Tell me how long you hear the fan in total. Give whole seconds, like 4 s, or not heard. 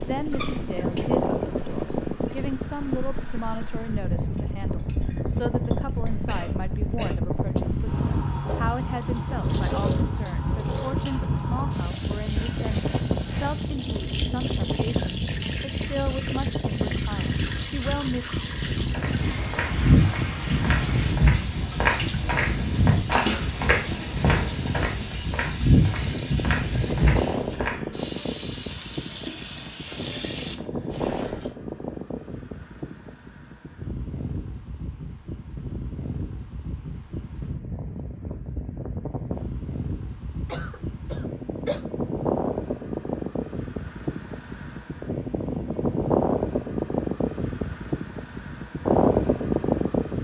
50 s.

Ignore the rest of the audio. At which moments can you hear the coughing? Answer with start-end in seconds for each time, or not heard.
6.2-7.2, 40.5-41.9.